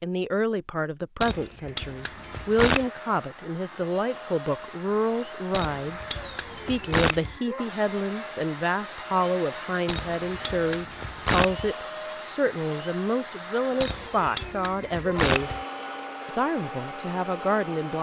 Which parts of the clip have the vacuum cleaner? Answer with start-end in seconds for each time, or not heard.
1.7-17.9.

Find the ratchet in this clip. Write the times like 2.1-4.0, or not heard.
1.2-2.9, 5.5-7.3, 9.8-11.7, 13.8-15.6.